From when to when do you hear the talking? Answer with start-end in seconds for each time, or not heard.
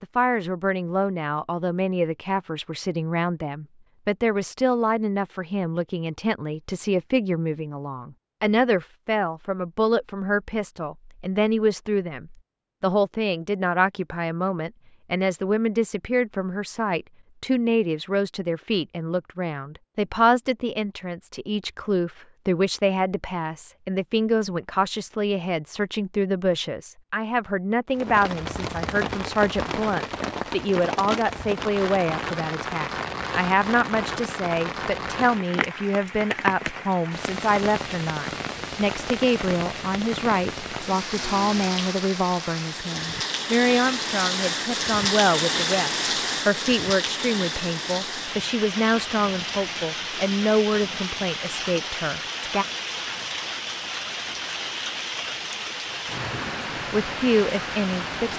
0.0-52.6, 56.9-58.3.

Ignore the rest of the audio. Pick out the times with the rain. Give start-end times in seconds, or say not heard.
27.9-58.3.